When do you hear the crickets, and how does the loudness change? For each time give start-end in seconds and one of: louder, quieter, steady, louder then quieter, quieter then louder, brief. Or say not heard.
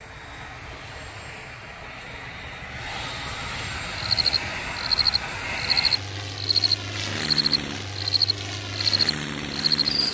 4.1-10.0 steady.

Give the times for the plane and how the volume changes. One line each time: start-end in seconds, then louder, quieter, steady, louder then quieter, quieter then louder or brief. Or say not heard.
0.0-10.0 louder.